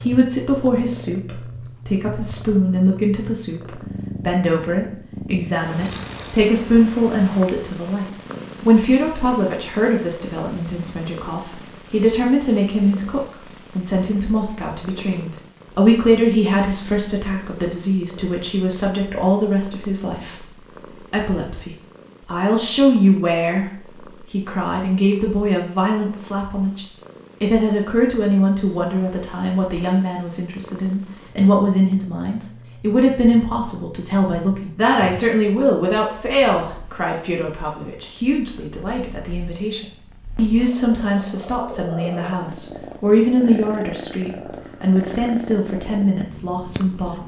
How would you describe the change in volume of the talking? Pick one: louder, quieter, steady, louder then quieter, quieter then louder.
steady.